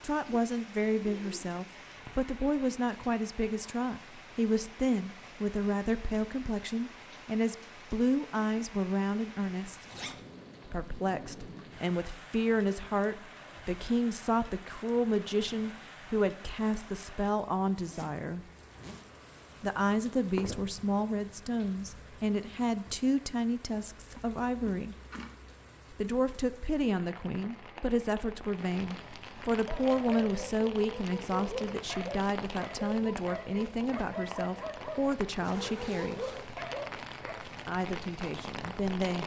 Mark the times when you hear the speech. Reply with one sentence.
The speech can be heard from 0.0 to 9.8 s, from 10.7 to 18.4 s, from 19.6 to 24.9 s, from 25.9 to 36.2 s and from 37.6 to 39.2 s.